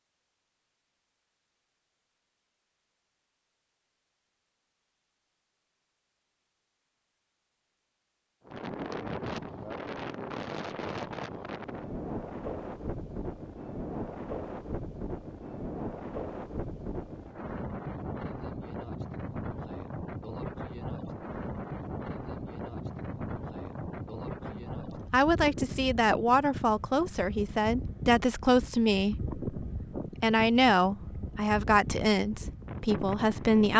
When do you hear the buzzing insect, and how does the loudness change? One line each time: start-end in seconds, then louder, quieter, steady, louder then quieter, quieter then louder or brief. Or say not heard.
not heard.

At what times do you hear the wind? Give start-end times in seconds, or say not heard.
8.4-33.7.